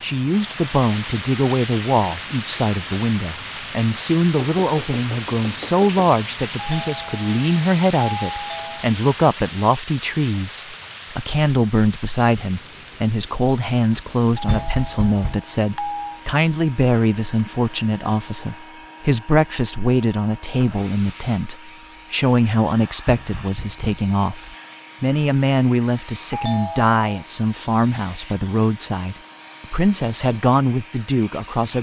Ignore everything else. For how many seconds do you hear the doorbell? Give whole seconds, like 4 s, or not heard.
5 s.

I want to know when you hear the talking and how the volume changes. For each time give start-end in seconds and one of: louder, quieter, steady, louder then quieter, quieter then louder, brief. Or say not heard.
0.0-31.7 steady.